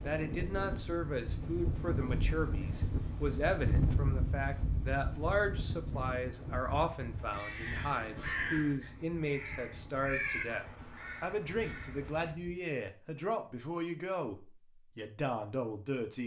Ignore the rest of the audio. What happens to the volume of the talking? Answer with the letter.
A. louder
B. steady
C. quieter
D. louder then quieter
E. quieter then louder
B.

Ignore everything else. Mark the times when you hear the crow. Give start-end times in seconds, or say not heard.
7.1-12.3.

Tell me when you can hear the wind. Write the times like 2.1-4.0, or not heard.
0.0-12.6.